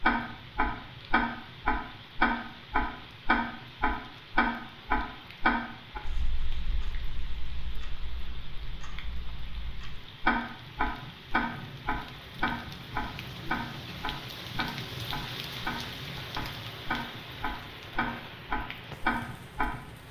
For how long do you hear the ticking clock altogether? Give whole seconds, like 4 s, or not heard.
20 s.